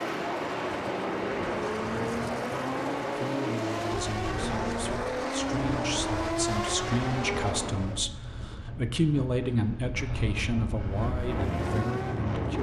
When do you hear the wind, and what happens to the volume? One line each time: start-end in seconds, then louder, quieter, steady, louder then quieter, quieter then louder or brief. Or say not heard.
0.0-12.5 quieter then louder.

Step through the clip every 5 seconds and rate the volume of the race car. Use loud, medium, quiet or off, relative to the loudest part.
loud, loud, medium.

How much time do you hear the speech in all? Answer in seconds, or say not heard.
9 s.